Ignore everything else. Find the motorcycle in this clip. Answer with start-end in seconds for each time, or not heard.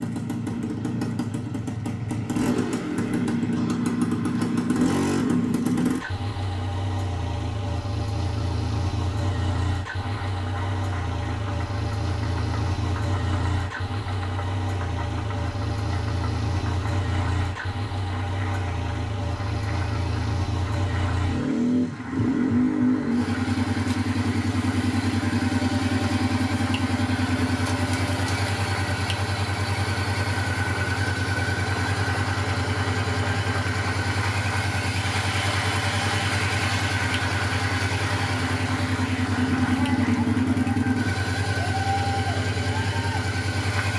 0.0-43.9.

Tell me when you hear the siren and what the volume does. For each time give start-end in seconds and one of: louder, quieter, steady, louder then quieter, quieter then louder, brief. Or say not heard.
not heard.